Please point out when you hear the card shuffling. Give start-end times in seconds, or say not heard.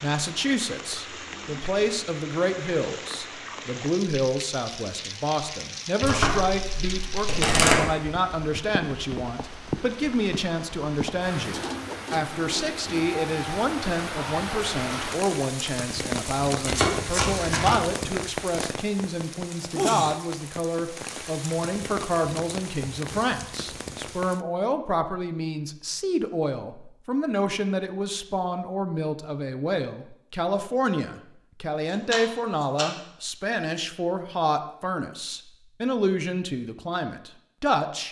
6.0-7.8, 16.6-17.9, 31.9-32.9.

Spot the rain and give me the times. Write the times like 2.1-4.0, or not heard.
0.0-24.4.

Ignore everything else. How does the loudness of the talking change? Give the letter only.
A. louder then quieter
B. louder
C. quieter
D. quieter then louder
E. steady
E.